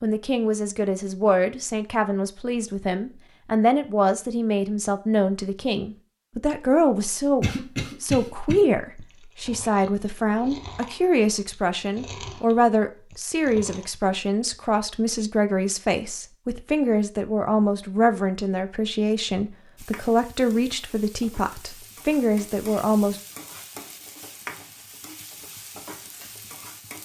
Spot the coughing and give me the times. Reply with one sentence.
The coughing can be heard from 7.4 to 8.6 s.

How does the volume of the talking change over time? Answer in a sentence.
The loudness of the talking stays about the same.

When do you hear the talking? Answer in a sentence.
The talking can be heard from 0.0 to 23.2 s.